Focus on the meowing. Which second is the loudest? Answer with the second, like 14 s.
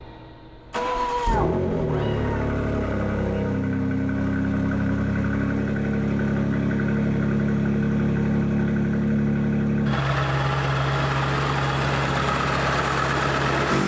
1 s.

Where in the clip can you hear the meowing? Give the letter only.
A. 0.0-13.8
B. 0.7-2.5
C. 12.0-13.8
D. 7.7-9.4
B.